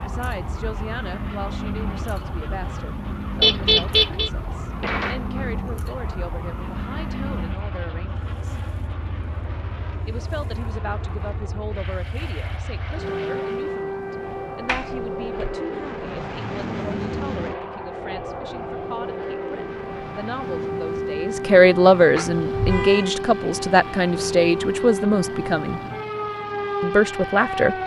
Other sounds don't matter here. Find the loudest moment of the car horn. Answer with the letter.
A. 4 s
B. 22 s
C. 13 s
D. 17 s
A.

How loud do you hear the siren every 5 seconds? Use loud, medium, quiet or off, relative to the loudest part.
medium, medium, medium, medium, loud, loud.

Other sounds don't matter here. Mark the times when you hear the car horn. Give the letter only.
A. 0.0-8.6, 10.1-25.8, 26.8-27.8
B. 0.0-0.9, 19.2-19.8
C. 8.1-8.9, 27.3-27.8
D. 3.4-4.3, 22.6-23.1
D.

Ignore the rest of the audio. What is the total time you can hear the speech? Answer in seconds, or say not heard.
25 s.